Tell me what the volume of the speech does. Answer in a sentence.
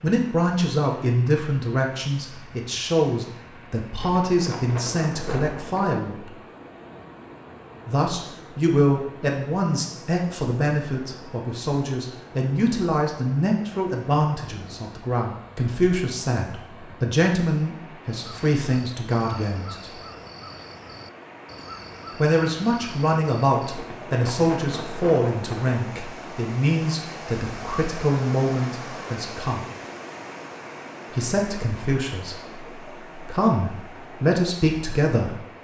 The volume of the speech stays about the same.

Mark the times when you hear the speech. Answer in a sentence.
You can hear the speech from 0.0 to 6.3 s, from 7.8 to 19.9 s, from 22.1 to 29.6 s and from 31.1 to 35.4 s.